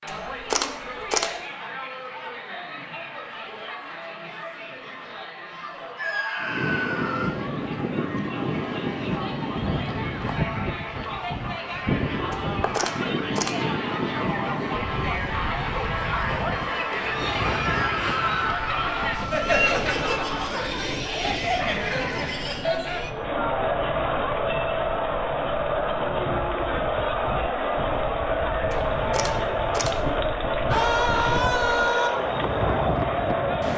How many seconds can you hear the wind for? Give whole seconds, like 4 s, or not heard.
27 s.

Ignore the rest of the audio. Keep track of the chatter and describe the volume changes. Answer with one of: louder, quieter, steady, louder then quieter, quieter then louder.
louder.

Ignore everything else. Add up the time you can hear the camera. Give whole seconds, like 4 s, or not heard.
4 s.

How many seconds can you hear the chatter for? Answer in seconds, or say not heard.
34 s.